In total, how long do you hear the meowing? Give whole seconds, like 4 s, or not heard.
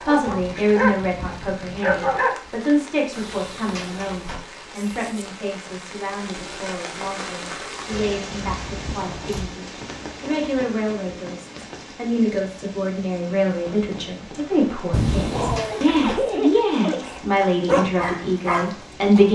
4 s.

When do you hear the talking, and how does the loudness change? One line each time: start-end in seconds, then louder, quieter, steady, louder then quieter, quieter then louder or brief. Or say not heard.
0.1-19.2 quieter then louder.